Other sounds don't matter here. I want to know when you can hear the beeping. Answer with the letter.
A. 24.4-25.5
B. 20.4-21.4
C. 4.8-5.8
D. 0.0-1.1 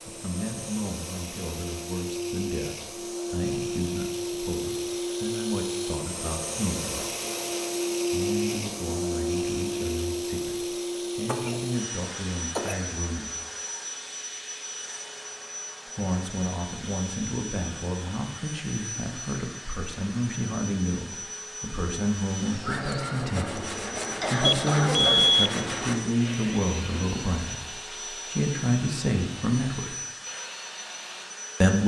A.